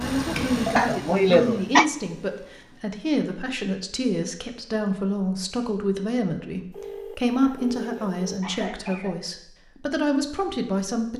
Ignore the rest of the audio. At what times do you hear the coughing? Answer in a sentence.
The coughing can be heard from 0.7 to 1.9 s and from 7.3 to 9.2 s.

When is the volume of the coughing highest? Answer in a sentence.
The loudest moment of the coughing is at 1 second.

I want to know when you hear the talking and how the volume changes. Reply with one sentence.
You can hear the talking from 0.0 to 11.1 s, at a steady volume.